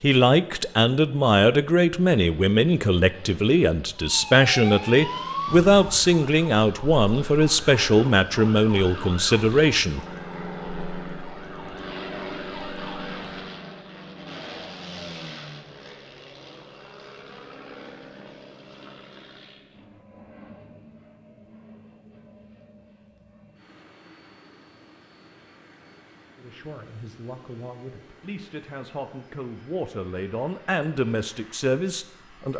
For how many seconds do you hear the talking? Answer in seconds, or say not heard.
16 s.